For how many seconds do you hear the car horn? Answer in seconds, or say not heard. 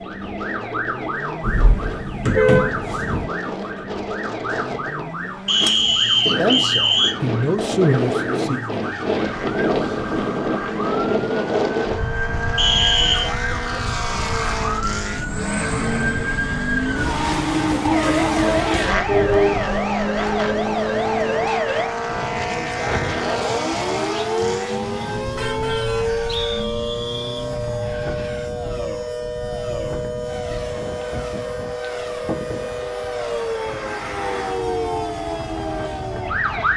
3 s.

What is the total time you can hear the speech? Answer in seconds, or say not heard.
2 s.